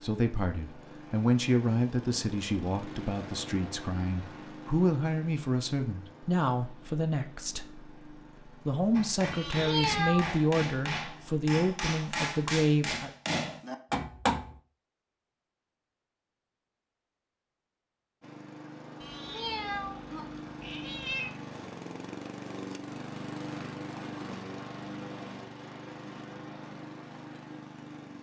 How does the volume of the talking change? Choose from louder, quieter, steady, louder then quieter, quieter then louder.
steady.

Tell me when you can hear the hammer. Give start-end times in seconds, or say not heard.
8.9-14.6.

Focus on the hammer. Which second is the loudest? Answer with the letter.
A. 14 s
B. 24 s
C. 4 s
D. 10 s
A.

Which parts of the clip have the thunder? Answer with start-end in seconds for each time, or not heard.
not heard.